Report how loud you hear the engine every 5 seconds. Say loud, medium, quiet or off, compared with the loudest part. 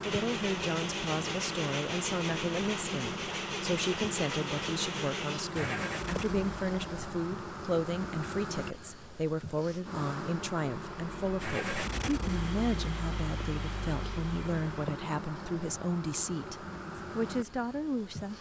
loud, loud, loud, off.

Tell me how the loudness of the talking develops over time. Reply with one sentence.
The volume of the talking stays about the same.